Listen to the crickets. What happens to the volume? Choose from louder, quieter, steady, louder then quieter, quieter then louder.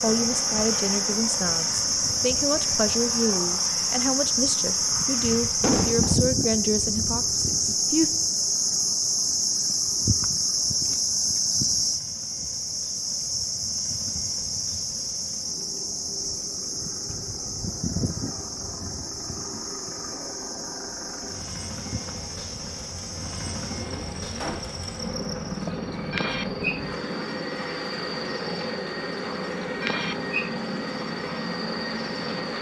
quieter.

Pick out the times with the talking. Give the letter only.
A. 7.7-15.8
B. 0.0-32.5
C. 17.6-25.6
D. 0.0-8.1
D.